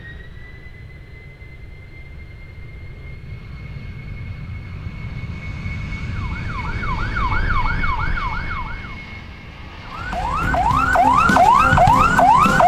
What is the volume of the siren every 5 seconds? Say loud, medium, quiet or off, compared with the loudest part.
off, quiet, loud.